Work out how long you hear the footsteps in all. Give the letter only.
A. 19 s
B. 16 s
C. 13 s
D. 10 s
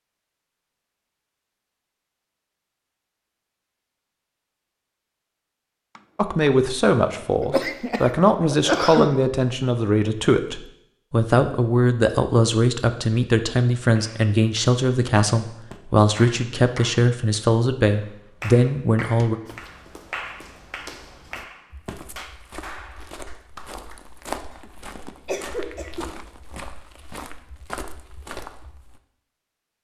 D.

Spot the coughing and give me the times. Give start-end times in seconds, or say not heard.
7.4-9.2, 24.5-26.1.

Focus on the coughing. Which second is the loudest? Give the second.
9 s.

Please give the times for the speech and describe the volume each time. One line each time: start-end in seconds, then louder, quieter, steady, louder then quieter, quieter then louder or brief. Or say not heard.
6.2-19.4 steady.